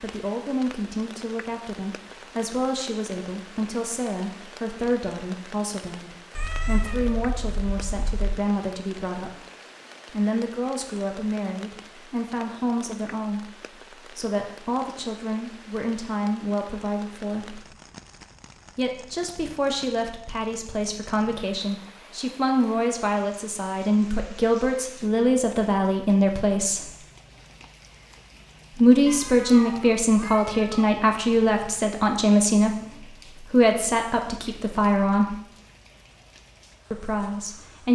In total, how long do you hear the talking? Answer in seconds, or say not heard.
33 s.